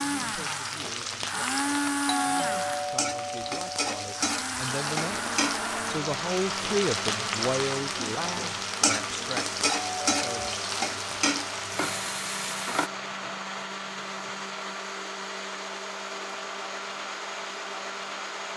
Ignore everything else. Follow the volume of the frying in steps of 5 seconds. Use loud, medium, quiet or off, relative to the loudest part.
loud, loud, loud, off.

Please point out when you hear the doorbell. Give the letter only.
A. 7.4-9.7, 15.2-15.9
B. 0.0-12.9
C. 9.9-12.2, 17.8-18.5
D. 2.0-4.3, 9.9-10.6
D.